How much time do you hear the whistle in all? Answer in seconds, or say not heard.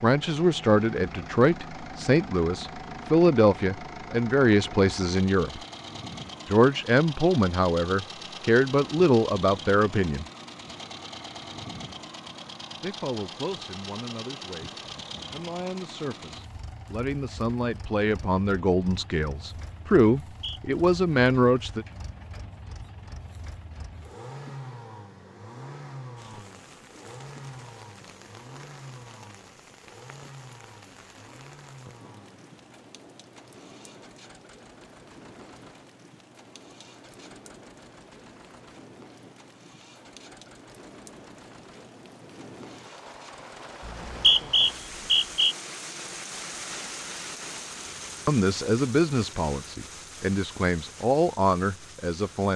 2 s.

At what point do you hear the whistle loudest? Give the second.
44 s.